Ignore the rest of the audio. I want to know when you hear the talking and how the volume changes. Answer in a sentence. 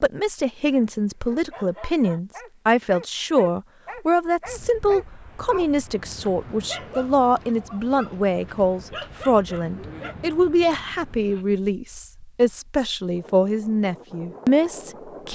You can hear the talking from 0.0 to 15.2 s, at a steady volume.